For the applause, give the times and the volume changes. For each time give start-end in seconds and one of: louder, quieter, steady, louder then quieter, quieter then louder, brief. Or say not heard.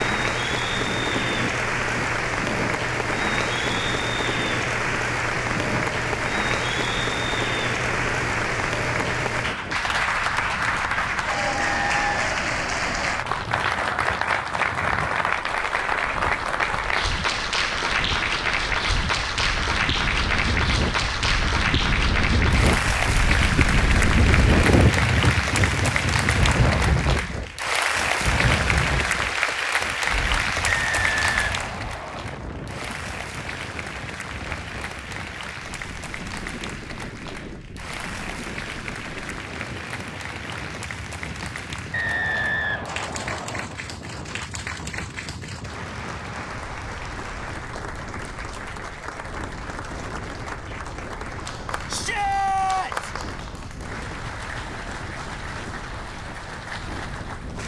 0.0-57.6 quieter.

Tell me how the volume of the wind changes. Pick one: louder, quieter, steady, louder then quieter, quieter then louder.
louder then quieter.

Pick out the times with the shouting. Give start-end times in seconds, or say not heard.
51.9-53.1.